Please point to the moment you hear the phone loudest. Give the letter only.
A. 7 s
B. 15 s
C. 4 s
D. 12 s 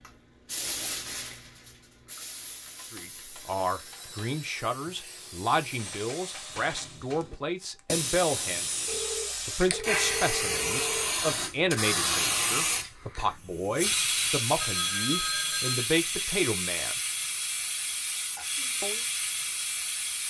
B.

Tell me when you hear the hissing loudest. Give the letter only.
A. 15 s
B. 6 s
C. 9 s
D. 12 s
D.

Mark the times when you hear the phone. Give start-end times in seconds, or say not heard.
2.6-4.6, 8.8-11.2, 14.6-15.9.